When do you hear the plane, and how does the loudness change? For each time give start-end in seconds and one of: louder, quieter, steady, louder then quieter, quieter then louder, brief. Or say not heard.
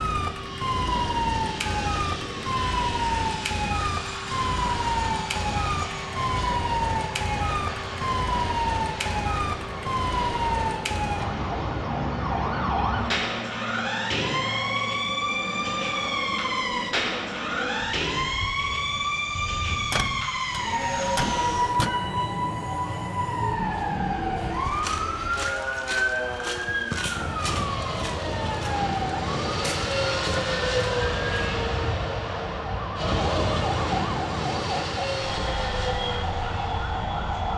0.0-37.5 louder.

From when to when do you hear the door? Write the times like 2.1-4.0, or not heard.
19.9-21.9.